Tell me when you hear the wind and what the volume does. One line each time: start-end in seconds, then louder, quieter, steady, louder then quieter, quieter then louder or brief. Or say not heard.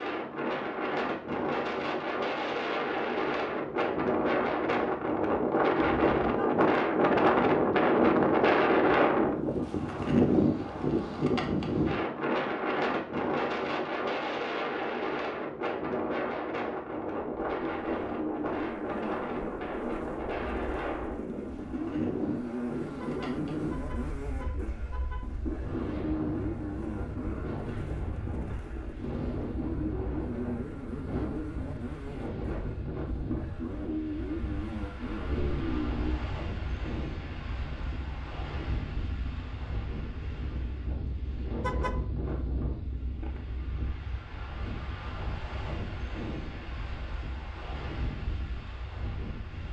0.0-49.6 quieter.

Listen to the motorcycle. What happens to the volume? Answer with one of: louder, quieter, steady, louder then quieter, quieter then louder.
quieter.